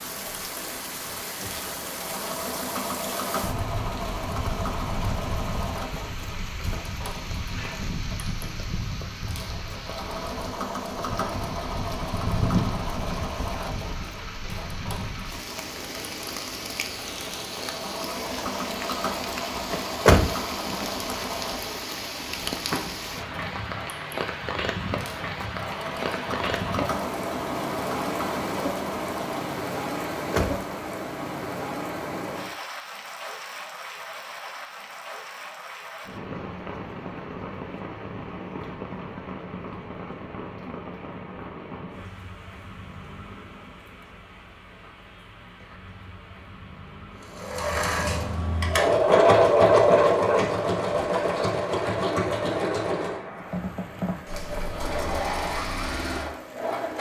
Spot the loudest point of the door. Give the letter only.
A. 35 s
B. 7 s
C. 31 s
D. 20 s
D.